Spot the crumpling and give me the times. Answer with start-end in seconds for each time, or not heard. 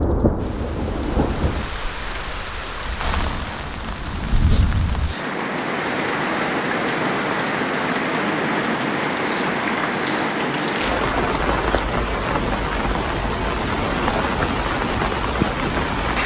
10.3-11.0.